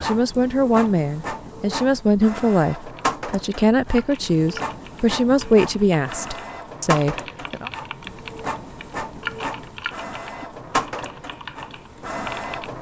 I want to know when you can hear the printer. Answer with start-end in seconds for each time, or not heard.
0.0-12.7.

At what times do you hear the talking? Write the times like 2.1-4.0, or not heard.
0.0-7.7.